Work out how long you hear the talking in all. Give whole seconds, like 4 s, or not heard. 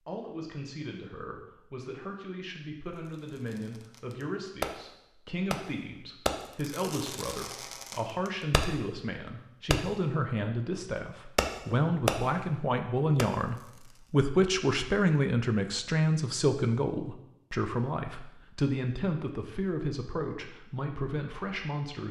22 s.